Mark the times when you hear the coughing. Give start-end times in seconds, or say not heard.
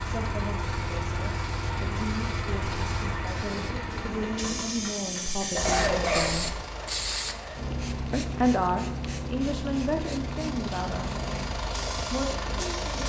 5.4-6.5.